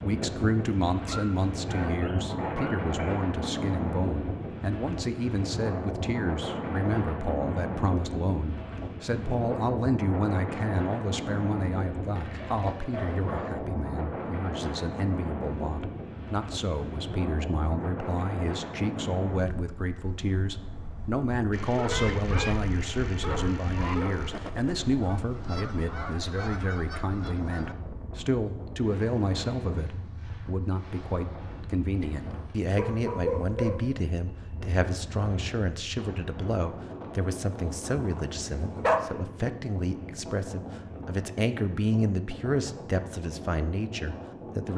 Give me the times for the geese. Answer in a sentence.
You can hear the geese from 21.9 to 27.8 s.